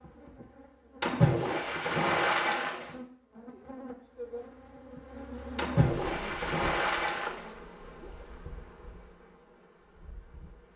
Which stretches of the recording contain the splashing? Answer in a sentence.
The splashing can be heard from 1.0 to 3.0 s and from 5.5 to 8.1 s.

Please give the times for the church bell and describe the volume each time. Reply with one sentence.
The church bell can't be heard in this clip.